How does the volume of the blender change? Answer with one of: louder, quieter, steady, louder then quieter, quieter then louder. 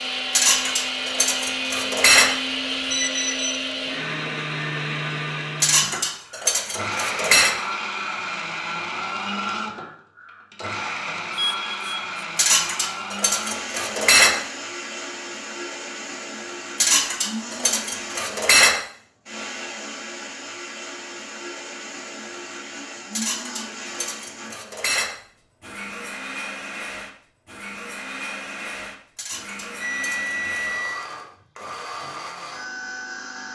quieter.